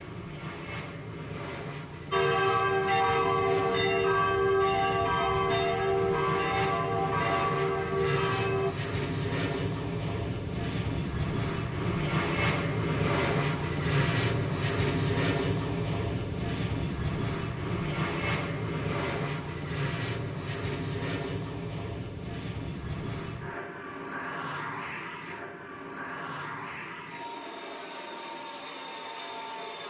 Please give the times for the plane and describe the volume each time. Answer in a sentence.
You can hear the plane from 0.0 to 29.8 s, getting louder then quieter.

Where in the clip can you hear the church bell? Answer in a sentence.
You can hear the church bell from 2.1 to 8.7 s.